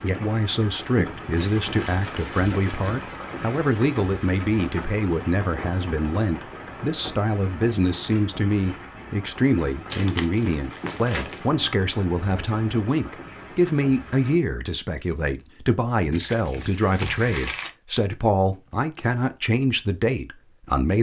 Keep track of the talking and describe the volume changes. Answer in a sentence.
The volume of the talking stays about the same.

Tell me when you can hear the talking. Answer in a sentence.
You can hear the talking from 0.0 to 20.9 s.